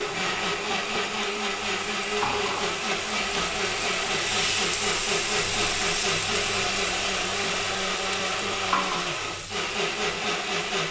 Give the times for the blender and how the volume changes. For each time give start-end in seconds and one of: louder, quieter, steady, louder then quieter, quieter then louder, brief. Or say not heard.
0.0-10.8 steady.